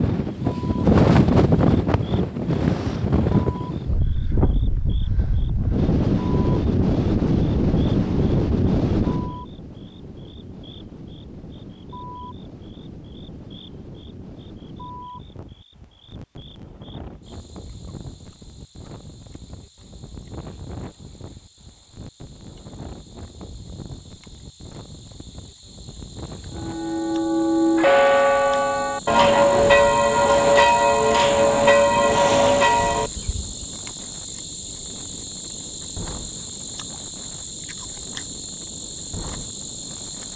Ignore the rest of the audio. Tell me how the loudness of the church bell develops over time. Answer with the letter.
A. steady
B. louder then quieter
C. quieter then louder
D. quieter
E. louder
A.